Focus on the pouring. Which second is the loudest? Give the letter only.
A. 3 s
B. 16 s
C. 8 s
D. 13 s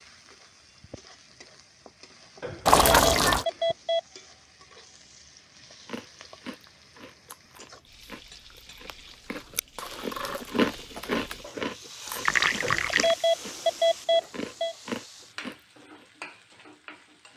A.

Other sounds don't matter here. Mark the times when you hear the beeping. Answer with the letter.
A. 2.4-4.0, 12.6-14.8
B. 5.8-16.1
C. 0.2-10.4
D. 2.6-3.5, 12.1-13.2
A.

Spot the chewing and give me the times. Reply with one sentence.
You can hear the chewing from 5.8 to 16.1 s.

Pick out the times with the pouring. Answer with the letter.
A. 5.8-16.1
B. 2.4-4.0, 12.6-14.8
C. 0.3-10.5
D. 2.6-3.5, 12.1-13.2
D.